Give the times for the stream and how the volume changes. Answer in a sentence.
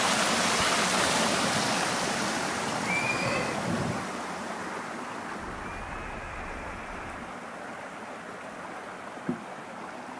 The stream can be heard from 0.0 to 10.1 s, getting quieter.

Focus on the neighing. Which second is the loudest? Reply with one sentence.
The loudest moment of the neighing is at 3 seconds.